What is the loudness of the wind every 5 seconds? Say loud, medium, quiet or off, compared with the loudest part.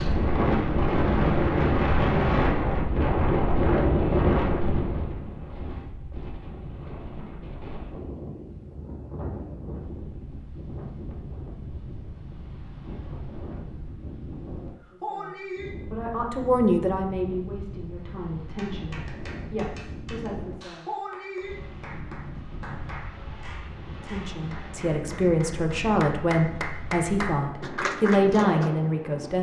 loud, quiet, quiet, quiet, quiet, quiet.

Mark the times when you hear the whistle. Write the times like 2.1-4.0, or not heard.
not heard.